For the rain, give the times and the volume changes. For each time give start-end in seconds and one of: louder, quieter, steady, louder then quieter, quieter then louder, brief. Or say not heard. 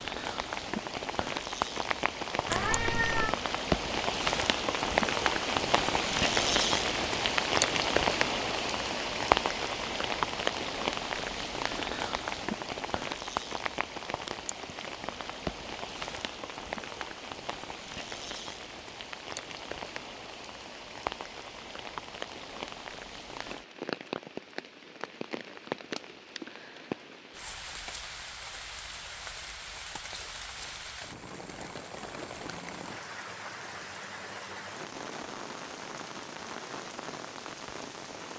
0.0-38.3 quieter.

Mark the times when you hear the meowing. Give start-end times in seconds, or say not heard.
2.5-3.4.